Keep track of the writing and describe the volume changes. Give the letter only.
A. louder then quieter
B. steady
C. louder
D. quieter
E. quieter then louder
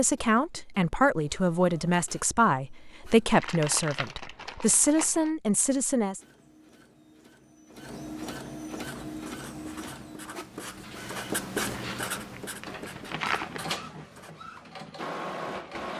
A.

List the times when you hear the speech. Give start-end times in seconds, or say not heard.
0.0-6.2.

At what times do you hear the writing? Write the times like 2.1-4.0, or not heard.
8.8-14.3.